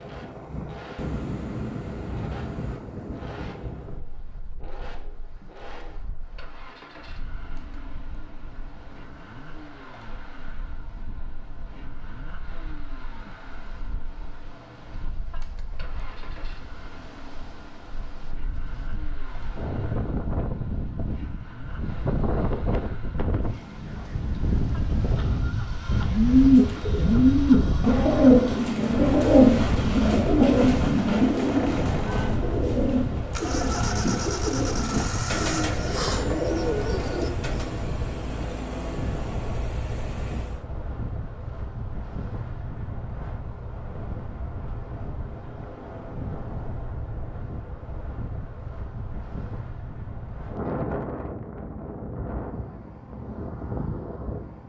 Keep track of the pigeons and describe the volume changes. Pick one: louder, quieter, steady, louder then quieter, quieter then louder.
quieter.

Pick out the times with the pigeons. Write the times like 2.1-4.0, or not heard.
26.0-37.8.